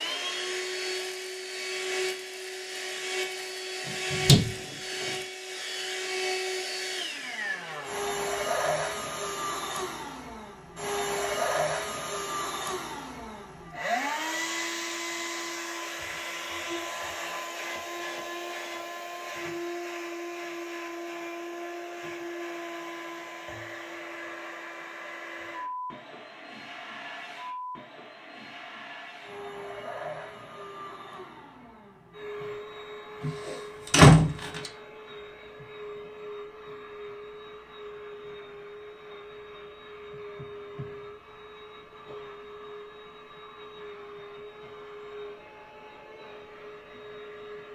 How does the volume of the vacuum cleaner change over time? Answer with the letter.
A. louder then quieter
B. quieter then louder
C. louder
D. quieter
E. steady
D.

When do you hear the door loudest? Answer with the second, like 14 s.
34 s.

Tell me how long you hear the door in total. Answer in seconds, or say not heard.
3 s.